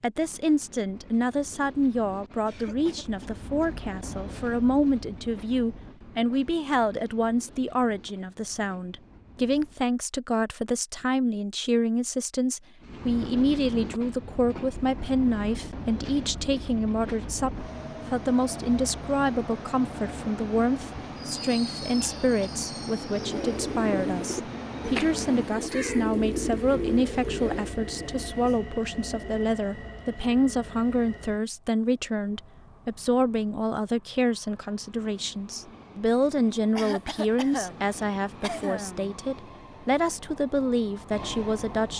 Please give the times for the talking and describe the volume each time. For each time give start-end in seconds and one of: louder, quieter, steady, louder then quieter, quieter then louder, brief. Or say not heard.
0.0-41.9 steady.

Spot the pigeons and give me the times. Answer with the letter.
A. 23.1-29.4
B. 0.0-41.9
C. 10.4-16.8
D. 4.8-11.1
A.